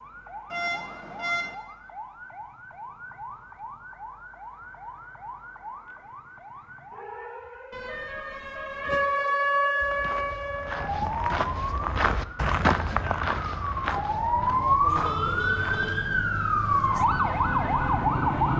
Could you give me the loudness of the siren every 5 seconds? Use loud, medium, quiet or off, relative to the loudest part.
quiet, medium, loud, loud.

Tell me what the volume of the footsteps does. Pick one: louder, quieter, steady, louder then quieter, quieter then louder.
louder then quieter.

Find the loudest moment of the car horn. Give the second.
1 s.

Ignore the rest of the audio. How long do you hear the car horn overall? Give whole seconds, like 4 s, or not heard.
4 s.